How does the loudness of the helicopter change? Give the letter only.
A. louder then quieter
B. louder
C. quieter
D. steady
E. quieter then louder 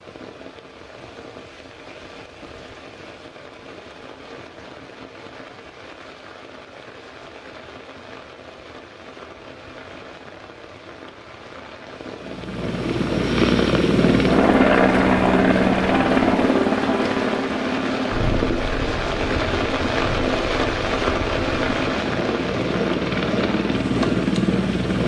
E.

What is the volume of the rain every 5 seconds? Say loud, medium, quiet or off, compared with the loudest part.
quiet, quiet, quiet, loud, loud.